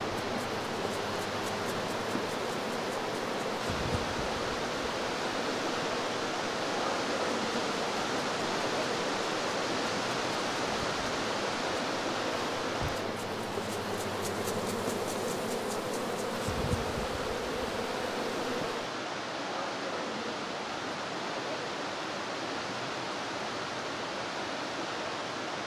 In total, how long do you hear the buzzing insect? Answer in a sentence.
You can hear the buzzing insect for 19 seconds altogether.